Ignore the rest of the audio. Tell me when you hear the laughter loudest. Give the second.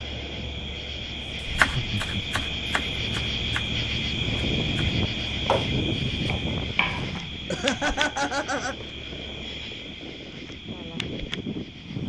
8 s.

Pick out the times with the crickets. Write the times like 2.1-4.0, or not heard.
0.0-12.0.